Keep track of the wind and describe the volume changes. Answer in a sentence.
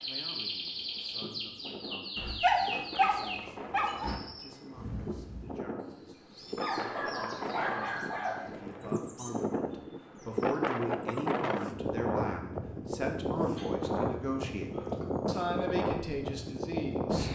The loudness of the wind goes up.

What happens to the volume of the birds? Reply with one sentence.
The loudness of the birds goes down.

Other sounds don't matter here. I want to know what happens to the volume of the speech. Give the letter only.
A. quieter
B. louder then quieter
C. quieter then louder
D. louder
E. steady
D.